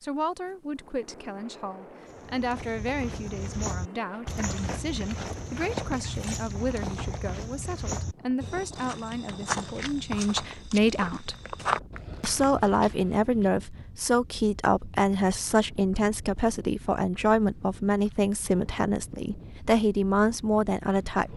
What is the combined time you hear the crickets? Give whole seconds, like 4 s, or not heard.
not heard.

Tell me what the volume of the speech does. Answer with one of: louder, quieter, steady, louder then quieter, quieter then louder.
louder.